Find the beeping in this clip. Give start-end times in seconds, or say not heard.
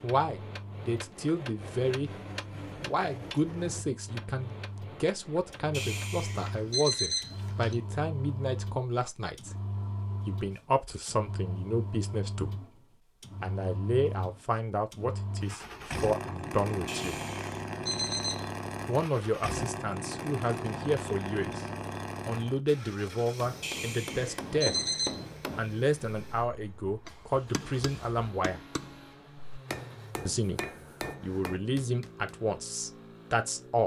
5.7-7.8, 16.9-18.5, 23.6-25.2.